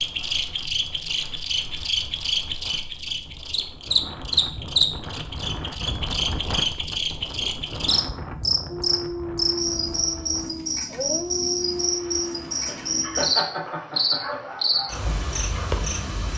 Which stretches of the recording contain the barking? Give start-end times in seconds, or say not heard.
8.7-15.8.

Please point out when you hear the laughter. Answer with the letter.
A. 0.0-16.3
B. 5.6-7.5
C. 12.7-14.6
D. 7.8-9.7
C.